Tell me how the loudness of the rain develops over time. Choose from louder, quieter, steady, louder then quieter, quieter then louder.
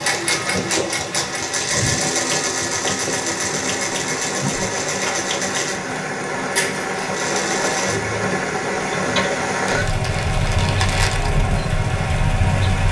louder.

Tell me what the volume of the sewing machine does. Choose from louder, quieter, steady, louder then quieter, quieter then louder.
quieter.